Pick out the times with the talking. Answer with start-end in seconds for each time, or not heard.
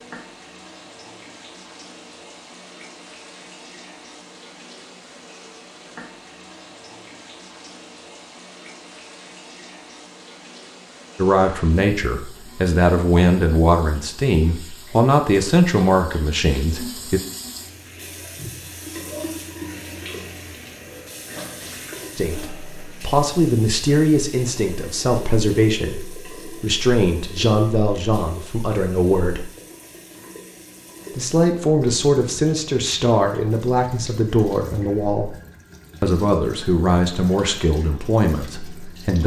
11.2-17.2, 22.1-29.4, 31.1-35.3, 36.0-39.2.